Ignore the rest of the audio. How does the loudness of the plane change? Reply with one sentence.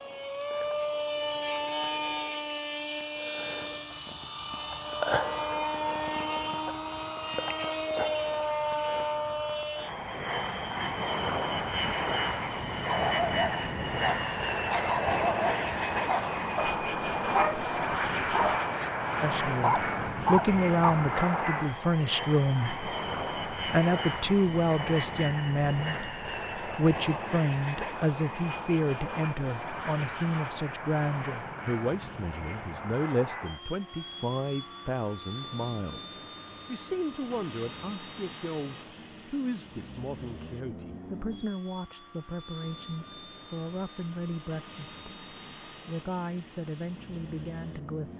The volume of the plane goes down.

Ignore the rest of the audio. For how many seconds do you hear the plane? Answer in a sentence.
The plane can be heard for 48 seconds in total.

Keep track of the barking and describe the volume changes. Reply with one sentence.
The loudness of the barking goes up.